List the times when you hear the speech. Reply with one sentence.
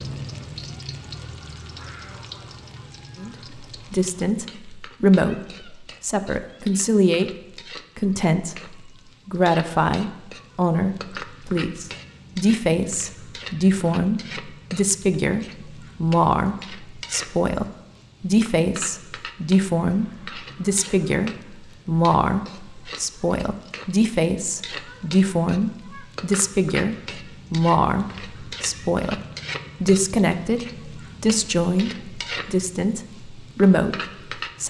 You can hear the speech from 3.1 to 7.3 s, from 8.0 to 29.2 s and from 29.8 to 34.6 s.